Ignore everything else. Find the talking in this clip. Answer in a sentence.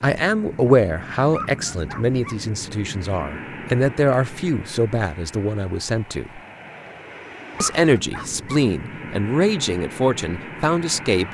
The talking can be heard from 0.0 to 6.4 s and from 7.6 to 11.2 s.